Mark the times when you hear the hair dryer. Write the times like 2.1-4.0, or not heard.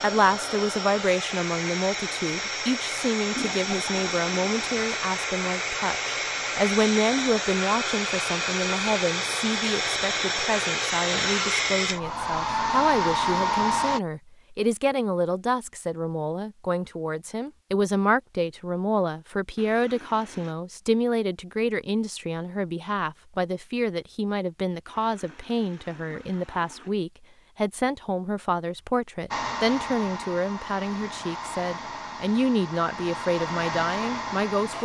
0.0-14.0, 29.3-34.7.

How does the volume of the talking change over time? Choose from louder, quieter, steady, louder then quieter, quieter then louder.
steady.